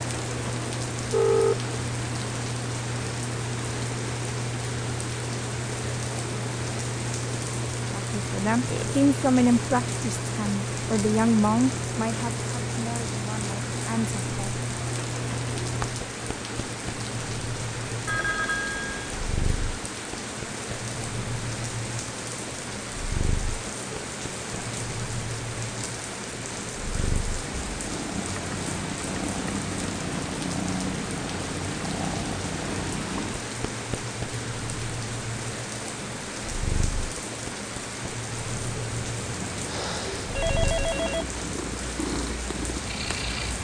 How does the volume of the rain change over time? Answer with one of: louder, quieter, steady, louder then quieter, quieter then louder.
steady.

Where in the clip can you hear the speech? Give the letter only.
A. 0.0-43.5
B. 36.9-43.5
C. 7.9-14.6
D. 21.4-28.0
C.